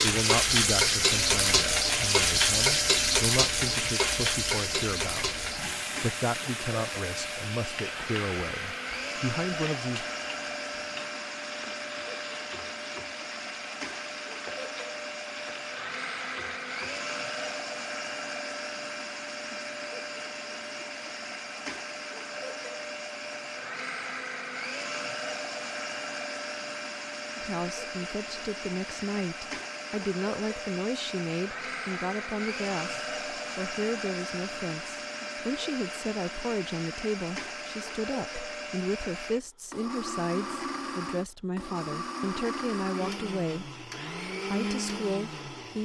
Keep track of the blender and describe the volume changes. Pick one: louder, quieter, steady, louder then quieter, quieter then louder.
steady.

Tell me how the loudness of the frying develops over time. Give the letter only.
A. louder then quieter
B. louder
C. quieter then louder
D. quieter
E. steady
D.